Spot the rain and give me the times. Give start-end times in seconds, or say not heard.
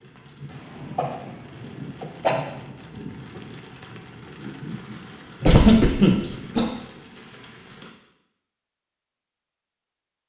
0.0-7.9.